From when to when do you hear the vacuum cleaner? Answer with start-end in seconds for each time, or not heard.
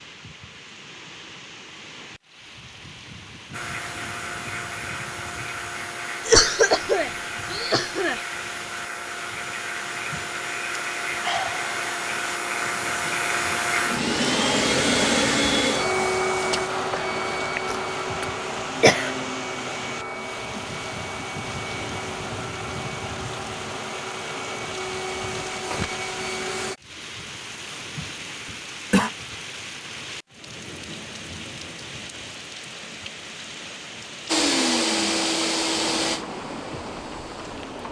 3.5-26.8, 34.2-37.8.